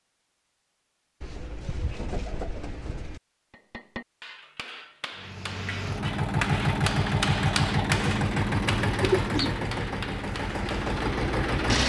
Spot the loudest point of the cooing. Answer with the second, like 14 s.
9 s.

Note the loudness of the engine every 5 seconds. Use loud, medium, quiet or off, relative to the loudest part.
off, loud, loud.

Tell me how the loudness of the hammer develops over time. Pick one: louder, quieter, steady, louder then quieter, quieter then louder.
louder then quieter.